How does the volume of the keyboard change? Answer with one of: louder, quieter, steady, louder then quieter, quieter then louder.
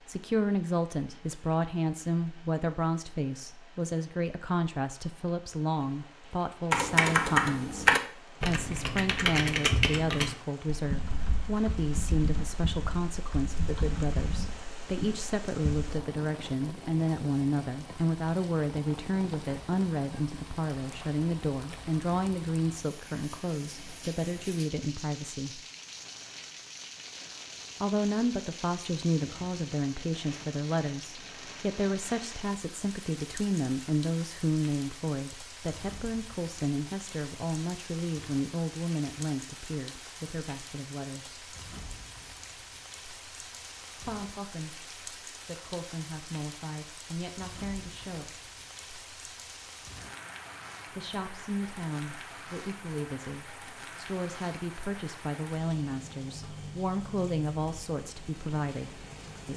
quieter.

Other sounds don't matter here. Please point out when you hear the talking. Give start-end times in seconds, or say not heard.
0.1-25.6, 27.8-41.5, 43.9-48.5, 50.9-59.5.